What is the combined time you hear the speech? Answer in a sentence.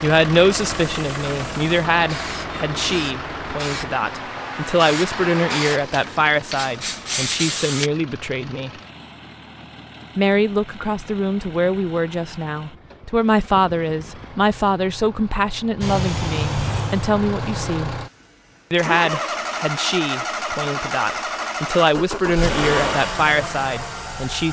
The speech can be heard for 22 seconds in total.